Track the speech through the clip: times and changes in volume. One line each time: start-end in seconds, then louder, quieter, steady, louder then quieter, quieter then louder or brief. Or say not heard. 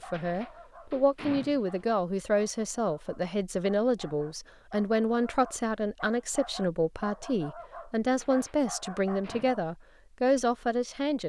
0.1-11.2 steady.